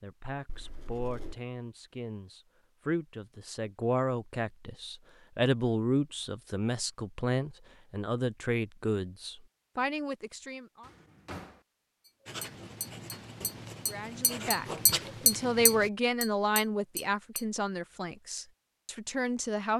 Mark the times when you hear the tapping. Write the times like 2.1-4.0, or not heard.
12.1-17.4.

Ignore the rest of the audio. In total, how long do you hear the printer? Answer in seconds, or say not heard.
not heard.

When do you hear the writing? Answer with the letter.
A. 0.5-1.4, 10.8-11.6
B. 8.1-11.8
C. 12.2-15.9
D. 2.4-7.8
C.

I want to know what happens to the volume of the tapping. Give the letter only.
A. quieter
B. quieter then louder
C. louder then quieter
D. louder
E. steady
C.